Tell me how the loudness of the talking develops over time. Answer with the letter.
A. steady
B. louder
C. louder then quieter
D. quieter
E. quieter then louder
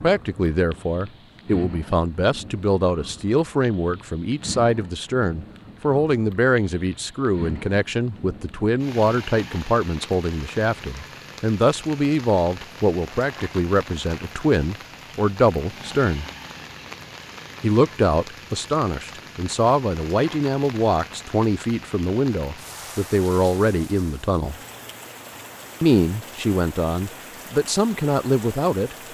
A.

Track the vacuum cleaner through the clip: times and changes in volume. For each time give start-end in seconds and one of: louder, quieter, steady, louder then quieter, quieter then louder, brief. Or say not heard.
not heard.